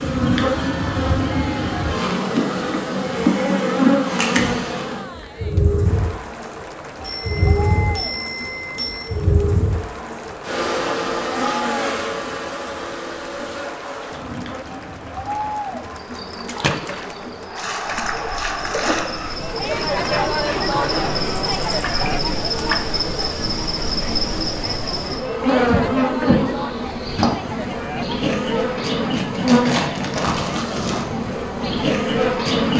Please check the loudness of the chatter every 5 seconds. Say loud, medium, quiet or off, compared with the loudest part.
medium, medium, medium, loud, loud, loud, medium.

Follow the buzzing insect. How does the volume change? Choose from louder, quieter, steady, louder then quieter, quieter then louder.
quieter then louder.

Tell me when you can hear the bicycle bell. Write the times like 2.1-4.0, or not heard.
7.0-9.1.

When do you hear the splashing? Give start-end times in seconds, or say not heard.
16.4-22.8.